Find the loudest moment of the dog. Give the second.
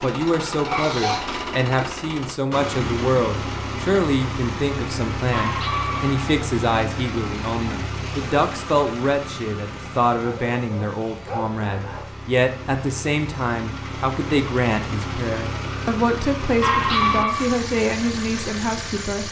17 s.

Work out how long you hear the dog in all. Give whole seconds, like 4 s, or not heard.
5 s.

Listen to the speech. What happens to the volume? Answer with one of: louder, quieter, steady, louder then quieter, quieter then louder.
steady.